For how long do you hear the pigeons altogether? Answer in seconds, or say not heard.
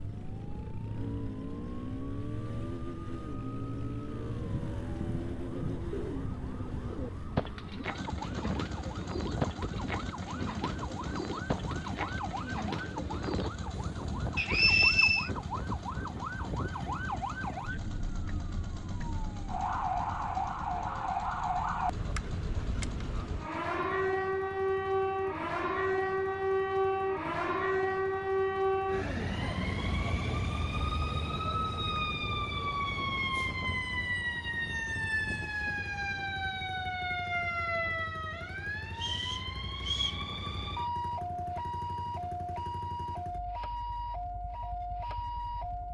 10 s.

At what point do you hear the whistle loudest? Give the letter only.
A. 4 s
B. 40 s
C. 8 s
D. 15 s
D.